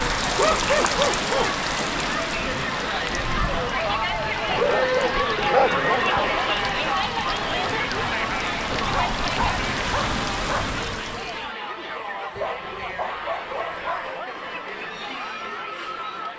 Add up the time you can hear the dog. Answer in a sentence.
You can hear the dog for 7 seconds altogether.